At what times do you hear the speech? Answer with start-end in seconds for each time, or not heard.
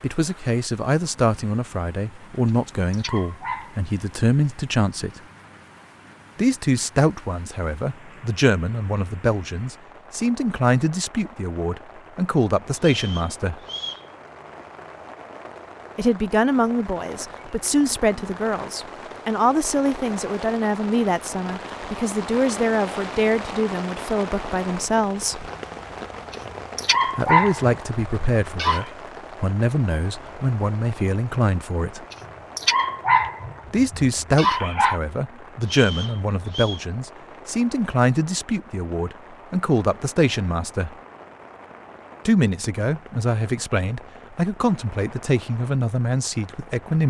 0.0-5.2, 6.3-13.6, 15.9-25.5, 27.1-32.0, 33.7-41.0, 42.2-47.0.